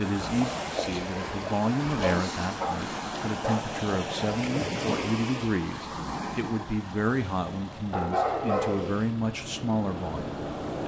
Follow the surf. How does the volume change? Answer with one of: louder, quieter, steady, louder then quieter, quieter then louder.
quieter.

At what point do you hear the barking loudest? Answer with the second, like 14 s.
8 s.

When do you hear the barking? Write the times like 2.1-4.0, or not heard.
1.9-3.6, 7.9-9.0.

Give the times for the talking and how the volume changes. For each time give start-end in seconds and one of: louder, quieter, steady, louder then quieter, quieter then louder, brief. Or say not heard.
0.0-10.8 steady.